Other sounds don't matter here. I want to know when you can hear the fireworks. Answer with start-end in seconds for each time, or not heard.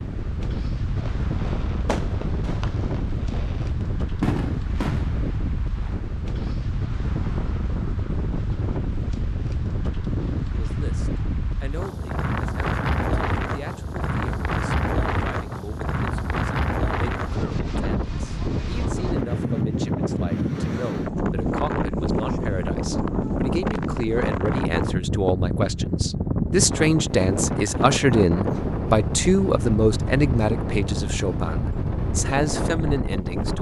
0.9-6.5.